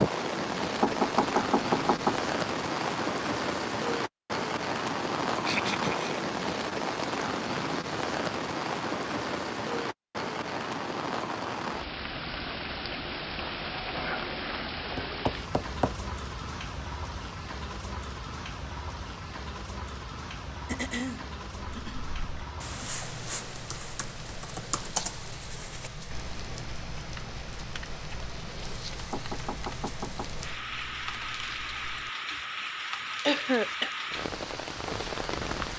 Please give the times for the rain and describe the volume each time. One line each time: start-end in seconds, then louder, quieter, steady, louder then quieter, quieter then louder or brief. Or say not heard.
0.0-35.7 quieter then louder.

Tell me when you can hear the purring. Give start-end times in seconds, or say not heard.
not heard.